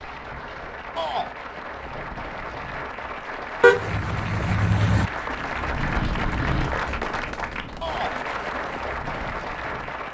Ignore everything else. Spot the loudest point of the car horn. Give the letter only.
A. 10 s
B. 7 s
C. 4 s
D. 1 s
C.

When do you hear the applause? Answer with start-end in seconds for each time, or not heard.
0.0-10.1.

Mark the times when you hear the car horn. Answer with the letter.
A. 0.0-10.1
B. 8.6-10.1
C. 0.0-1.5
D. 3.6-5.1
D.